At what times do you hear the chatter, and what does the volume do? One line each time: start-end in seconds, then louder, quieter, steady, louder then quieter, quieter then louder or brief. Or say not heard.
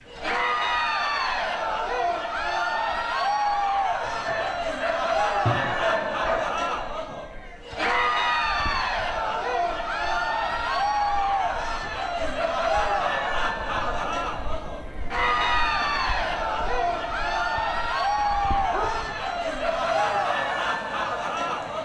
0.1-21.8 steady.